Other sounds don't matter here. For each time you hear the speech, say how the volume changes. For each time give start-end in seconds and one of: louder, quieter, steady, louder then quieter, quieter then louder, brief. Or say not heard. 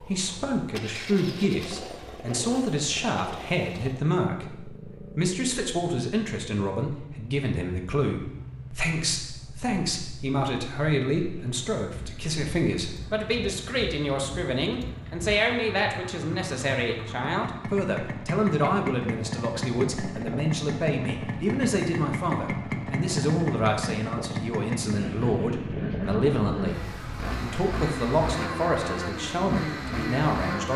0.0-30.7 steady.